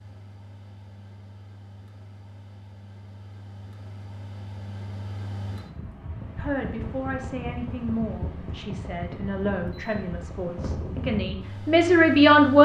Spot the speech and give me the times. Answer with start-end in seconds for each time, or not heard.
6.3-12.6.